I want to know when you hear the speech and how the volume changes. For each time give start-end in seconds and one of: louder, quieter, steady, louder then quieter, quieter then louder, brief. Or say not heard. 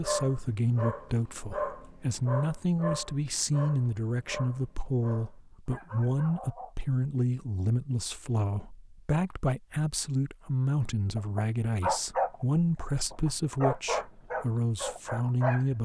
0.0-15.8 steady.